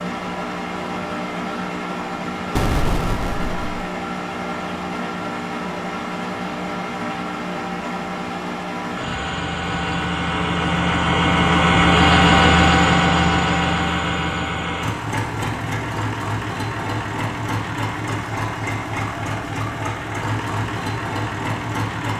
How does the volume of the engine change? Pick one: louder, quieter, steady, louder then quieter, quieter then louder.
louder then quieter.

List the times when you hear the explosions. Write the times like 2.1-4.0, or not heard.
2.5-3.9.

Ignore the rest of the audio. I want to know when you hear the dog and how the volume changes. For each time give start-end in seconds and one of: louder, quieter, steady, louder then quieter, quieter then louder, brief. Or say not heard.
not heard.